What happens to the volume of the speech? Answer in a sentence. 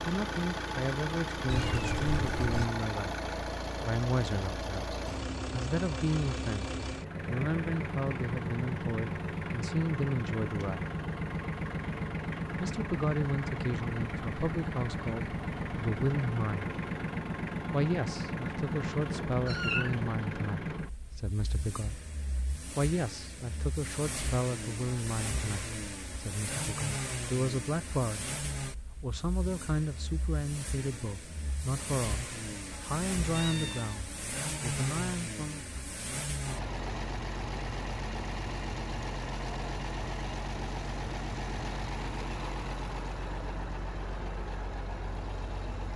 The loudness of the speech stays about the same.